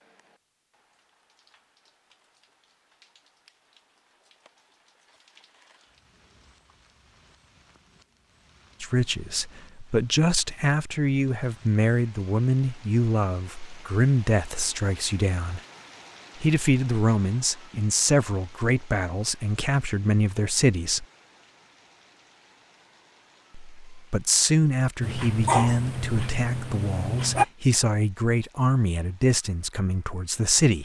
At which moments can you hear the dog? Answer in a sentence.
You can hear the dog from 25.0 to 27.4 s.